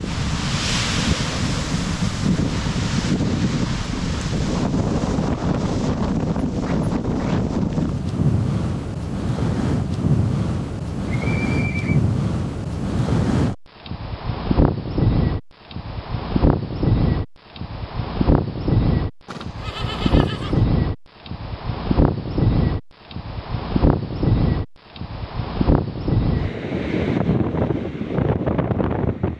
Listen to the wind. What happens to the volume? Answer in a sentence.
The volume of the wind stays about the same.